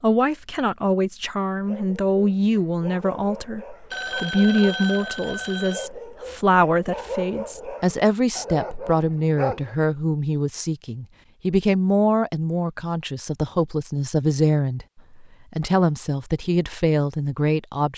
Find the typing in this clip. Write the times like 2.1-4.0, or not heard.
not heard.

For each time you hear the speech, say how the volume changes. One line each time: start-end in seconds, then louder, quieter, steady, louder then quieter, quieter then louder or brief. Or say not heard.
0.0-17.9 steady.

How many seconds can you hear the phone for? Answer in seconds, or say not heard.
2 s.